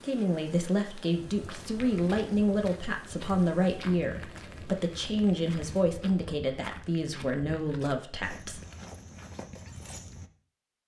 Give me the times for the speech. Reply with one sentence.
You can hear the speech from 0.0 to 8.6 s.